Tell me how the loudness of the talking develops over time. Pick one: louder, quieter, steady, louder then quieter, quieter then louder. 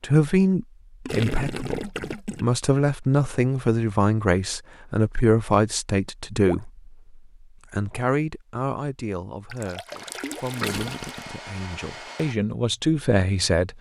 quieter then louder.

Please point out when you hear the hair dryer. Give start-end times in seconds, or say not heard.
9.8-12.3.